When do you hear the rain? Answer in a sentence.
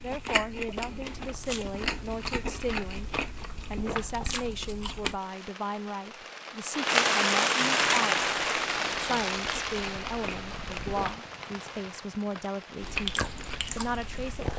You can hear the rain from 5.2 to 14.5 s.